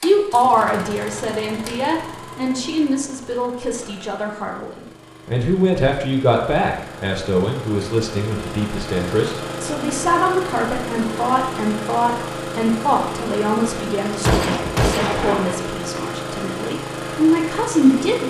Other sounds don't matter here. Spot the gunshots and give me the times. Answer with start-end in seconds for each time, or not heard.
14.2-16.0.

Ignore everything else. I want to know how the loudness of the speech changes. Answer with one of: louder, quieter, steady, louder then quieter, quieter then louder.
steady.